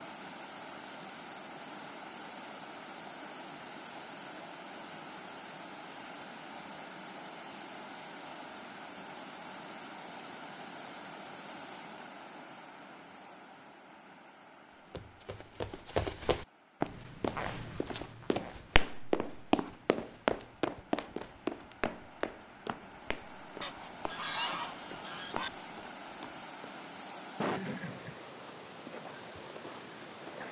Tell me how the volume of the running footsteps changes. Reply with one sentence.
The loudness of the running footsteps goes down.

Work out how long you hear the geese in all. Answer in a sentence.
You can hear the geese for 2 seconds altogether.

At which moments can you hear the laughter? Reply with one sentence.
The laughter can be heard from 27.4 to 28.1 s.